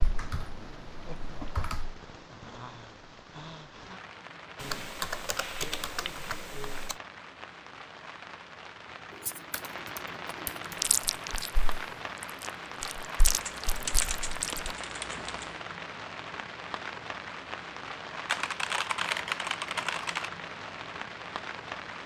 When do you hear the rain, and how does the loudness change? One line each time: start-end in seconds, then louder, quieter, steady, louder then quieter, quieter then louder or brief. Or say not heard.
0.0-22.0 louder.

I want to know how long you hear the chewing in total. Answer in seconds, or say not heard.
4 s.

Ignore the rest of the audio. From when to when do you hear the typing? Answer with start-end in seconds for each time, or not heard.
0.0-2.0, 4.5-7.0, 9.1-10.9, 13.2-15.6, 18.2-20.3.